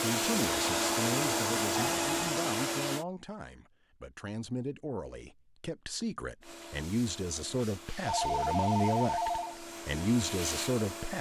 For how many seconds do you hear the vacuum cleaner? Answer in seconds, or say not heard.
8 s.